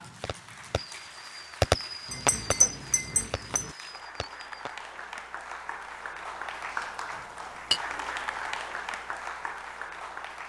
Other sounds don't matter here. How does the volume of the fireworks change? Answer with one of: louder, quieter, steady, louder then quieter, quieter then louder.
louder then quieter.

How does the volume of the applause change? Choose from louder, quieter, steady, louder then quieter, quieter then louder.
louder.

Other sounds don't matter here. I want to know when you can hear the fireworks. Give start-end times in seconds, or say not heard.
0.2-4.8.